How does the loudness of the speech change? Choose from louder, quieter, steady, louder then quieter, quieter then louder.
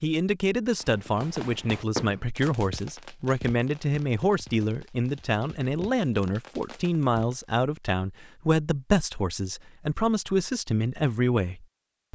steady.